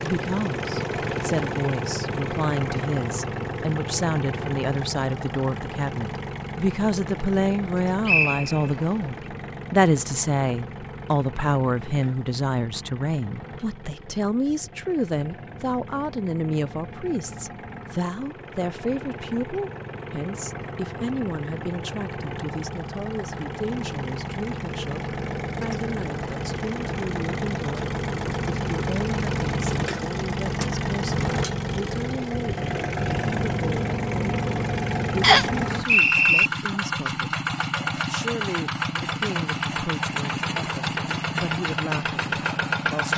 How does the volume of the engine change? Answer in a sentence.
The volume of the engine goes down, then up.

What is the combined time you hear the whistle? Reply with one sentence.
You can hear the whistle for 2 seconds altogether.